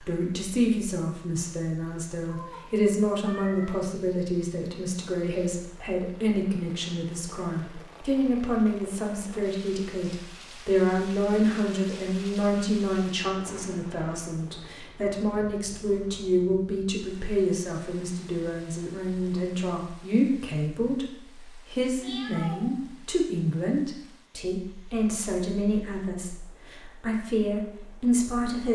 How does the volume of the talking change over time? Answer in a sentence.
The loudness of the talking stays about the same.